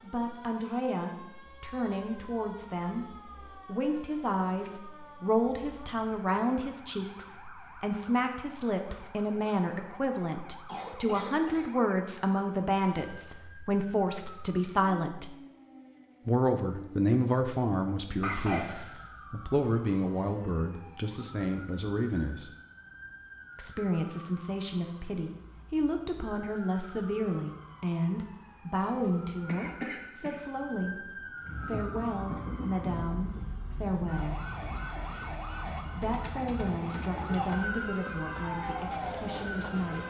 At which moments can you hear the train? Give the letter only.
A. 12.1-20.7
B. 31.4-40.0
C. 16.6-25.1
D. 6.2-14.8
B.